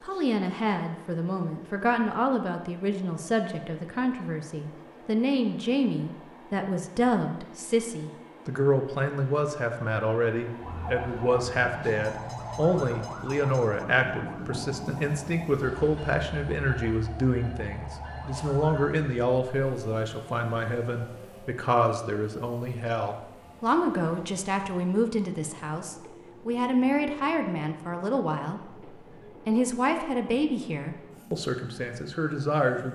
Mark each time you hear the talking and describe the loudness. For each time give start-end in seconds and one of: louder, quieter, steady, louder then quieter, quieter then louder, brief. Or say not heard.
0.0-32.9 steady.